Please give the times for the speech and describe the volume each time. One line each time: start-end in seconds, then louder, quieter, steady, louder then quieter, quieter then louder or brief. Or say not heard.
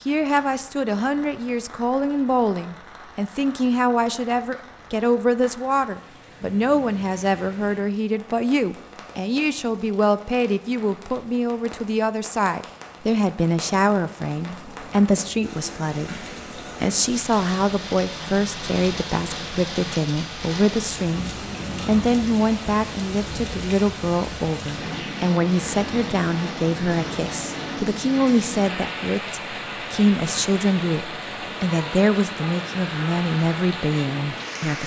0.1-16.1 steady
16.8-34.8 steady.